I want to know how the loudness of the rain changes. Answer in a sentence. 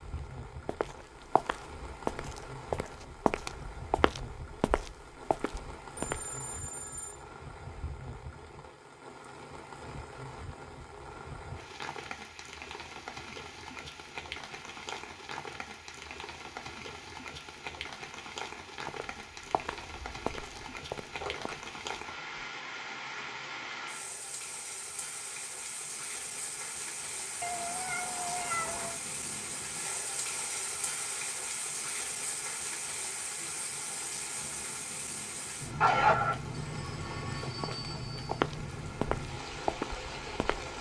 The loudness of the rain goes up.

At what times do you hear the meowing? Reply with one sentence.
You can hear the meowing from 27.4 to 29.0 s.